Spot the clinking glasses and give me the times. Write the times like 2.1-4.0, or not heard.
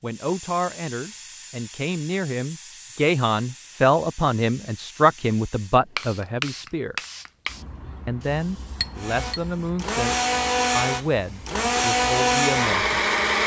8.8-9.4.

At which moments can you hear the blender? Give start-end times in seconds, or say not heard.
8.9-13.4.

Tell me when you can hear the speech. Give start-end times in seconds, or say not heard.
0.0-7.0, 8.1-13.0.